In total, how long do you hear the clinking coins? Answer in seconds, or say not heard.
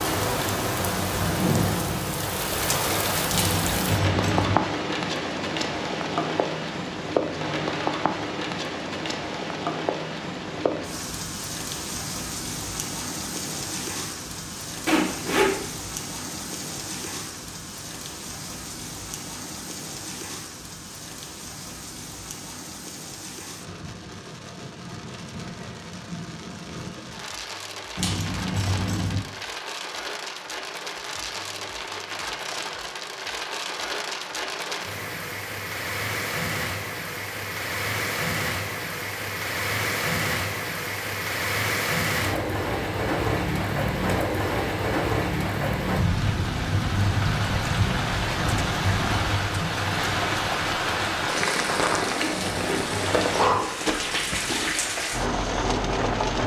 4 s.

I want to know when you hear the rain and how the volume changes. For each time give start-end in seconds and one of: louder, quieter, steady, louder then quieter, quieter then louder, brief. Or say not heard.
0.0-56.4 quieter then louder.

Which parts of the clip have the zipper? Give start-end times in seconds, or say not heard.
14.8-15.5, 52.1-52.9.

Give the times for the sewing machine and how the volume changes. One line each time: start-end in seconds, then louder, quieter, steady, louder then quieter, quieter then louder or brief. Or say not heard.
not heard.